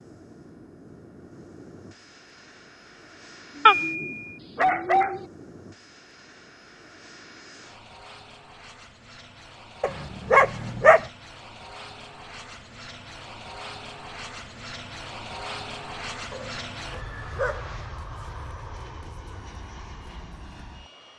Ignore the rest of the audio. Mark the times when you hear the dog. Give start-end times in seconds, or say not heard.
3.6-5.2, 9.8-11.1, 16.3-17.8.